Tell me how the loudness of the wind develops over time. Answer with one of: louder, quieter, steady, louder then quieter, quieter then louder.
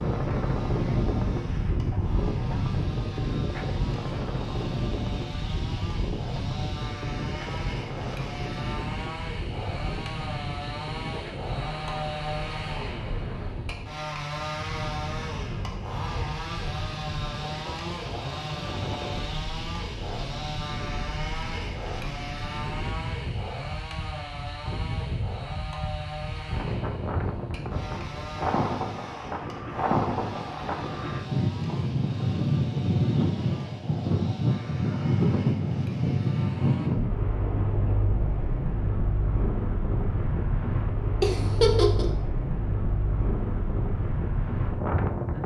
quieter then louder.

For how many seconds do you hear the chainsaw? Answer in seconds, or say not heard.
37 s.